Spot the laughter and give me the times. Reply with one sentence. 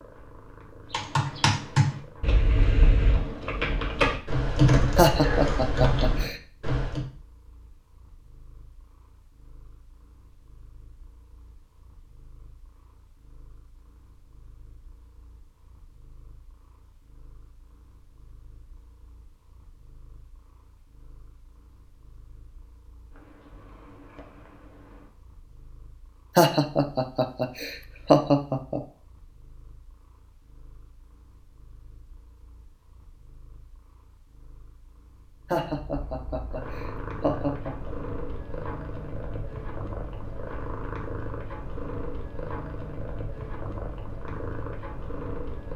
You can hear the laughter from 5.0 to 6.3 s, from 26.4 to 28.8 s and from 35.5 to 37.9 s.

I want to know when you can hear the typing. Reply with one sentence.
You can hear the typing from 0.9 to 7.0 s.